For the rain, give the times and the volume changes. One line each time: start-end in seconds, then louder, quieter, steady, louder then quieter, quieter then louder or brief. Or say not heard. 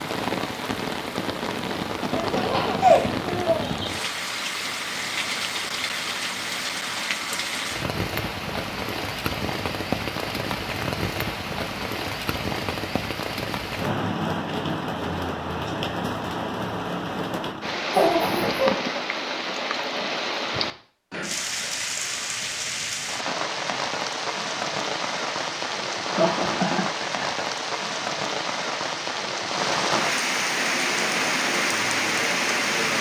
0.0-32.9 steady.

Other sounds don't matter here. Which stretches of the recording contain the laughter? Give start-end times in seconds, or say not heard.
2.1-3.8, 17.9-18.8, 26.1-27.4.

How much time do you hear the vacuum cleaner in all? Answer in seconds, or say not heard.
2 s.